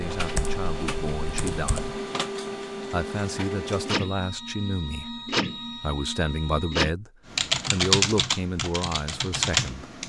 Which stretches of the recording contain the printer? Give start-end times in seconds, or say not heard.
0.0-7.0.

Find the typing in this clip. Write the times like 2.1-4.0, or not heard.
0.1-2.0, 7.3-10.0.